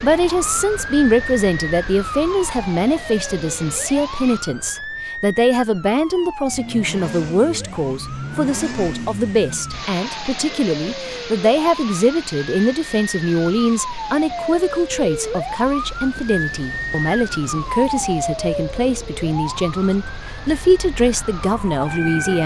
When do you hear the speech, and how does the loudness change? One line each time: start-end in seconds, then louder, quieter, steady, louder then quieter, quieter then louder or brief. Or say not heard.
0.0-22.4 steady.